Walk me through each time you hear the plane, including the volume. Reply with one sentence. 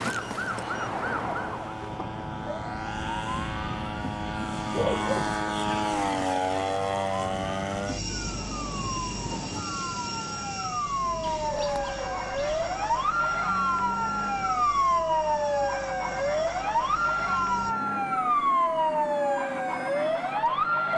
The plane can be heard from 0.0 to 20.9 s, getting louder then quieter.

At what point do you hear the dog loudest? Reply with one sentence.
The loudest moment of the dog is at 5 seconds.